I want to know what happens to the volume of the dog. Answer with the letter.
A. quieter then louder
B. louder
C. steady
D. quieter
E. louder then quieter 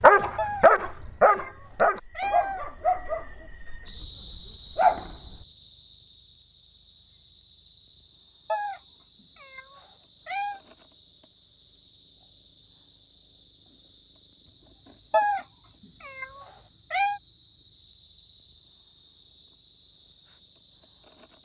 D.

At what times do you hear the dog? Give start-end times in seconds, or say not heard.
0.0-5.2.